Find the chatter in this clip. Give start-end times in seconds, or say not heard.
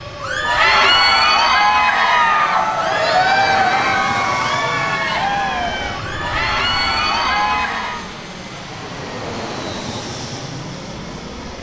0.1-8.1.